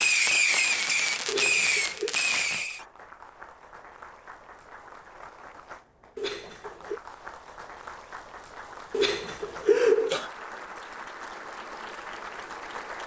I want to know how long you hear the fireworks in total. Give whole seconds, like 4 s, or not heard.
3 s.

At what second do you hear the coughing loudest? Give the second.
10 s.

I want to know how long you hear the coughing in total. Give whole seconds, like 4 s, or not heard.
3 s.